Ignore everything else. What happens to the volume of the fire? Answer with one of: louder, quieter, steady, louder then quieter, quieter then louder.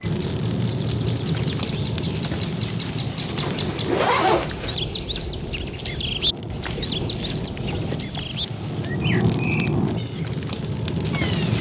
quieter then louder.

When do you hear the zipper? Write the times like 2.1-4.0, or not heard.
3.4-4.8.